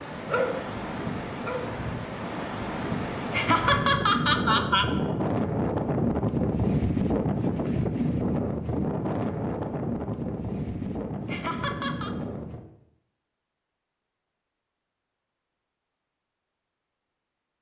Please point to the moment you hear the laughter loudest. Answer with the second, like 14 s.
4 s.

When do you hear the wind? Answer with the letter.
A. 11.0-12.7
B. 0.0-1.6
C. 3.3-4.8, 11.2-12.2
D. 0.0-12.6
D.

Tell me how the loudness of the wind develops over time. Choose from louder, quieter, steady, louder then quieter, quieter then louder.
louder then quieter.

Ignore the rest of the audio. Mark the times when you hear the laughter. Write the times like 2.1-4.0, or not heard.
3.3-4.8, 11.2-12.2.